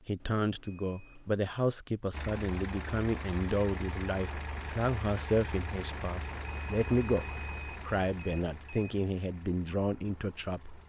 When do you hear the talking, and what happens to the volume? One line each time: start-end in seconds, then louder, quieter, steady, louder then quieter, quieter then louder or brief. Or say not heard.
0.1-10.8 steady.